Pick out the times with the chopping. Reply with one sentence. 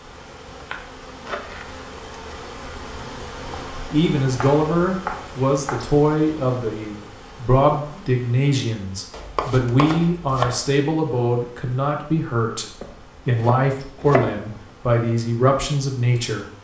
You can hear the chopping from 0.6 to 1.6 s, from 4.4 to 5.8 s, from 9.1 to 10.7 s and from 12.8 to 14.4 s.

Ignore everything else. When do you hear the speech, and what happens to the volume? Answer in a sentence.
You can hear the speech from 3.9 to 16.4 s, at a steady volume.